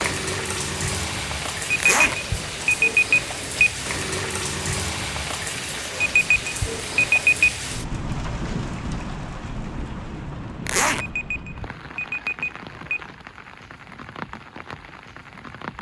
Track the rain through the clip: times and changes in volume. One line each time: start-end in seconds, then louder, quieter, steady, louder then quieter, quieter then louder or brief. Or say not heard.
0.0-15.7 quieter.